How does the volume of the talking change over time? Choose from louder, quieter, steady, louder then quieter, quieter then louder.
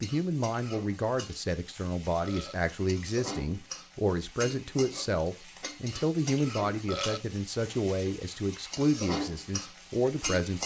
steady.